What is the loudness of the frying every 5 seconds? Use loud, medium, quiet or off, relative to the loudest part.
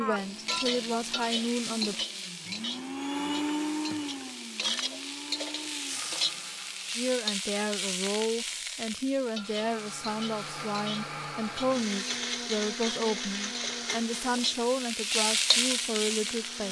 medium, medium, medium, loud.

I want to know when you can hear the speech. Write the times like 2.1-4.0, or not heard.
0.0-1.9, 7.0-16.6.